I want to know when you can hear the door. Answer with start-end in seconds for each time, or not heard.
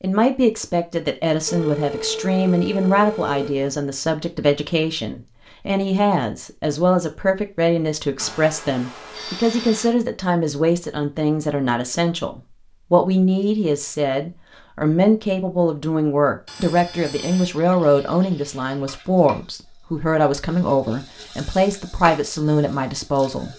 not heard.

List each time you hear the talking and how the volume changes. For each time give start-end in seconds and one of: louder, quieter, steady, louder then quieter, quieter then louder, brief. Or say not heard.
0.0-23.5 steady.